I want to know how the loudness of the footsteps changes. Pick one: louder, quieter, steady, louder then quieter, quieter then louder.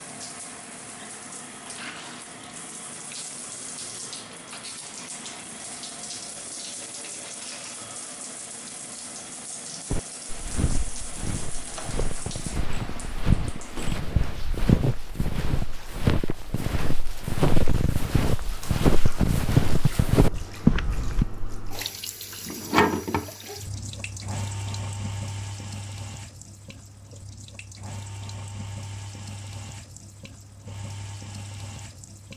louder.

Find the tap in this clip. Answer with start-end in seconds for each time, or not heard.
0.0-32.3.